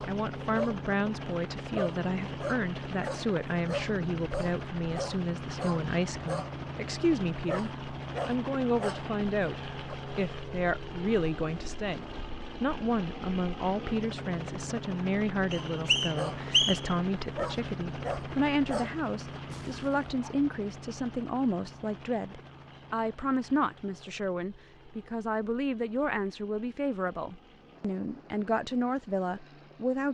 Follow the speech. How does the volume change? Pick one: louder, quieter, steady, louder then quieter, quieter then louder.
steady.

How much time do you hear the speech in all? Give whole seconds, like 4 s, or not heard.
30 s.